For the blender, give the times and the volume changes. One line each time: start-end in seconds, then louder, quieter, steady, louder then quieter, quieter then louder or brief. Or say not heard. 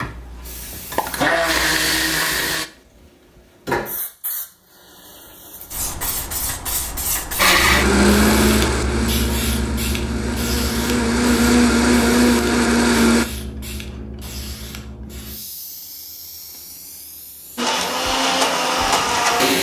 0.0-2.6 brief
7.3-13.2 quieter then louder
17.6-19.5 brief.